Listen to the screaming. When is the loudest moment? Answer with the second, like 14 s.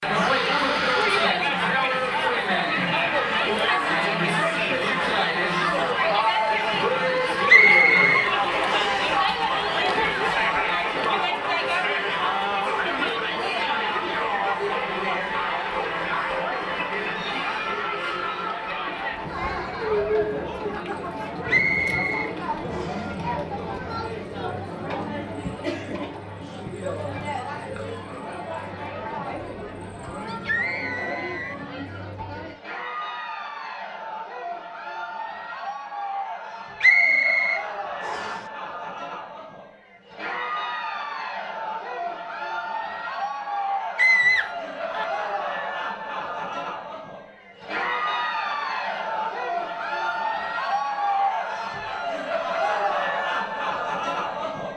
44 s.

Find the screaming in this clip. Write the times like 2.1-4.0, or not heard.
0.1-1.4, 30.2-31.6, 44.0-45.0.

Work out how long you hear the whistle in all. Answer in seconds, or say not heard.
5 s.